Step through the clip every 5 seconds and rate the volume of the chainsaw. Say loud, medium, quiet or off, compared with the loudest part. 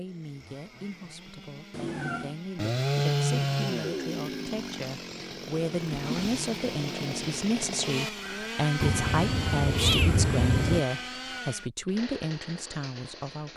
loud, loud, medium.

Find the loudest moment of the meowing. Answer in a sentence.
The loudest moment of the meowing is at 10 seconds.